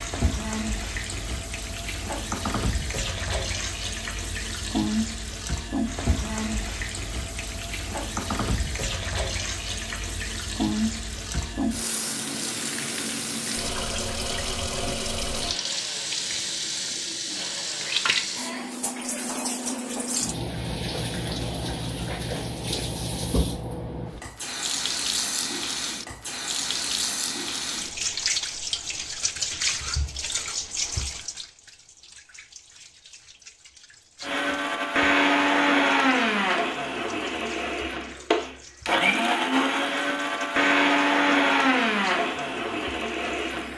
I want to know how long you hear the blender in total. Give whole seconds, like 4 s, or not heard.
28 s.